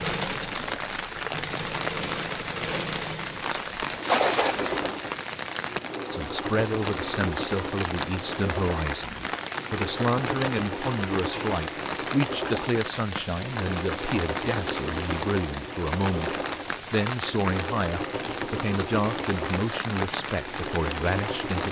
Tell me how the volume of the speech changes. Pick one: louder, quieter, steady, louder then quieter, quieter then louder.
steady.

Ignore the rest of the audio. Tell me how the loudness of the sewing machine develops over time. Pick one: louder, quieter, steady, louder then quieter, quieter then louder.
steady.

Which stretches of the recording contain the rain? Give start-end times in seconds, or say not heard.
0.0-21.6.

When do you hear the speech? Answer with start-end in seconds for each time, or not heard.
6.1-21.6.